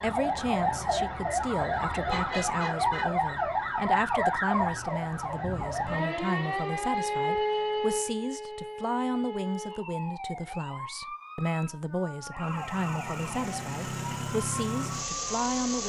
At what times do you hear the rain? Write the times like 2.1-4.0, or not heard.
not heard.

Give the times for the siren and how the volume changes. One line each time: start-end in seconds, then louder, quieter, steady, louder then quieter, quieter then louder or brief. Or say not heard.
0.0-15.8 quieter.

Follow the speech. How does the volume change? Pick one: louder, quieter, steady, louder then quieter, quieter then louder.
steady.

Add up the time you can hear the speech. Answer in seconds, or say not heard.
16 s.